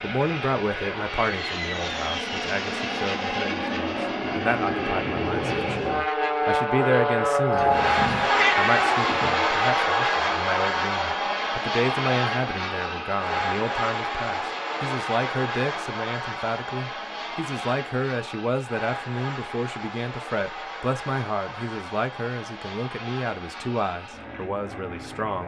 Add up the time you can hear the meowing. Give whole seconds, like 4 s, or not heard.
2 s.